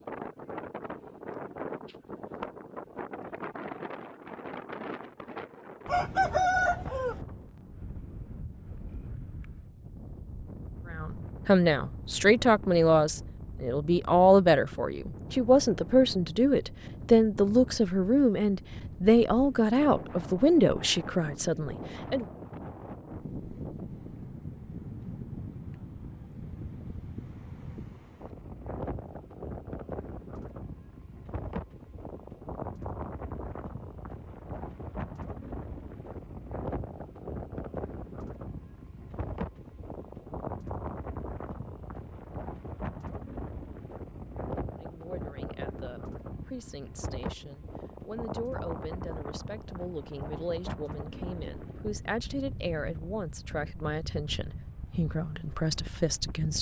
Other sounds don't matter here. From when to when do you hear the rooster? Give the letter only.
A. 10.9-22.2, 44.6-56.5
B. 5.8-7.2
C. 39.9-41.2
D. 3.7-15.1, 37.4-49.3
B.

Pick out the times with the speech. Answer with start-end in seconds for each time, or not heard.
10.9-22.2, 44.6-56.5.